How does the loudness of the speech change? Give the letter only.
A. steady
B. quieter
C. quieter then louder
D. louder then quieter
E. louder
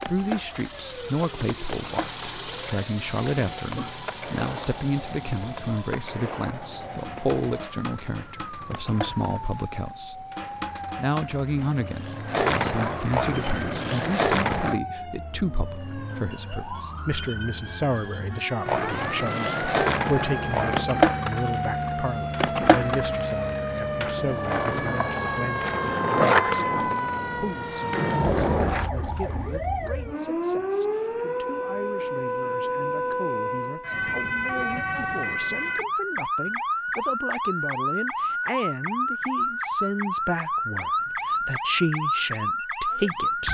C.